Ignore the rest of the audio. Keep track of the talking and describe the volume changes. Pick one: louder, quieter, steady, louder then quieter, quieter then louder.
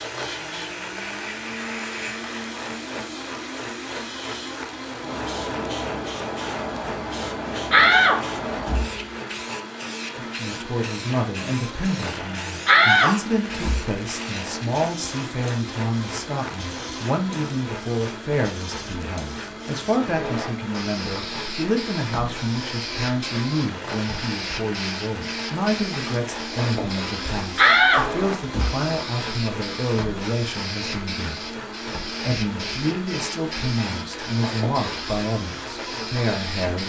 steady.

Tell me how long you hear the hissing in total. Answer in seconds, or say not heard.
37 s.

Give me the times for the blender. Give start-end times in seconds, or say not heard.
0.0-36.8.